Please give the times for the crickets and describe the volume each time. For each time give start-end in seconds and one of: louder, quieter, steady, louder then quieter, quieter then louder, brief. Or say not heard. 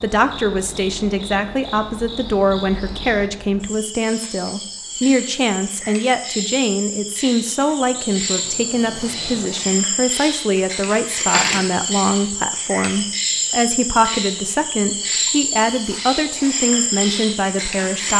0.0-18.1 louder.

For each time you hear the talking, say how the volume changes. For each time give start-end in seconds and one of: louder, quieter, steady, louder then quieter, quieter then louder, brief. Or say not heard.
0.0-18.1 steady.